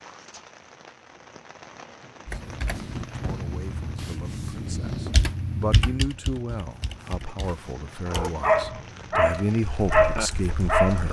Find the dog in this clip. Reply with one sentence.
You can hear the dog from 8.1 to 11.0 s.